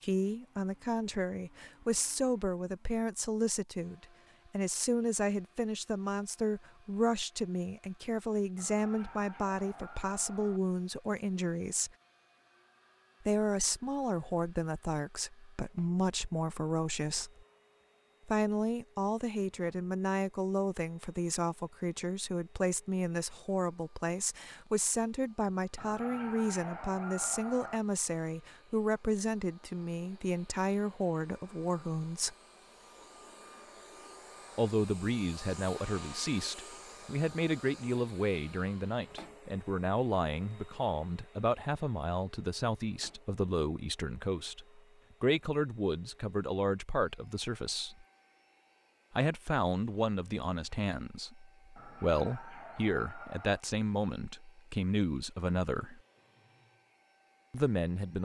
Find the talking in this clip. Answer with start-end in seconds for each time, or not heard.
0.0-11.9, 13.2-17.3, 18.2-32.4, 34.5-48.0, 49.1-56.0, 57.5-58.1.